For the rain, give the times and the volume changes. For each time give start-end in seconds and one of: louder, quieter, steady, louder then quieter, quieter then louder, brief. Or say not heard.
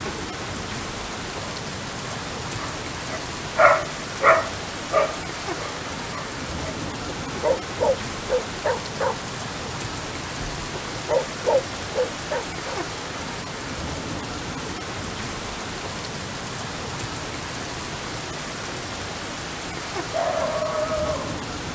0.0-21.7 steady.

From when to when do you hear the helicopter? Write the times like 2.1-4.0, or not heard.
not heard.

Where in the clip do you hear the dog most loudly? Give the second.
4 s.